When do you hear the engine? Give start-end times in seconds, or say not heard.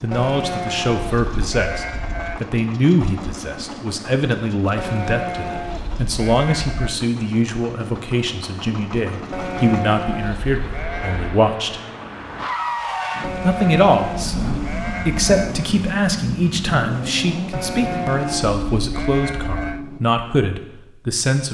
0.0-20.0.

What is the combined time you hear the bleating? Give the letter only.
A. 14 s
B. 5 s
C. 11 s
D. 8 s
C.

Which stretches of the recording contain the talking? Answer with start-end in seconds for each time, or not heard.
0.0-11.8, 13.4-21.4.